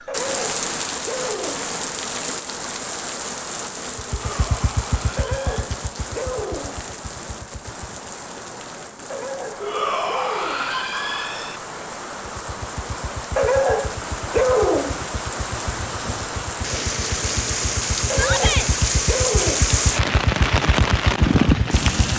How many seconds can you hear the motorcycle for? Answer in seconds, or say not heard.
14 s.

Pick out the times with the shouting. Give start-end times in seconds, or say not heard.
4.0-5.7, 9.6-11.6, 18.1-18.7.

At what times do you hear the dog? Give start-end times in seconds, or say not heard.
0.1-1.8, 5.2-6.8, 9.1-10.8, 13.3-15.1, 18.1-19.8.